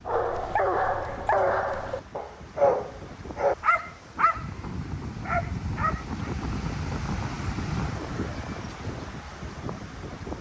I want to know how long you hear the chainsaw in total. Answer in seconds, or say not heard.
not heard.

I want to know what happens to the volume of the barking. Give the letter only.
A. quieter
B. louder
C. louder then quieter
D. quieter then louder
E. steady
A.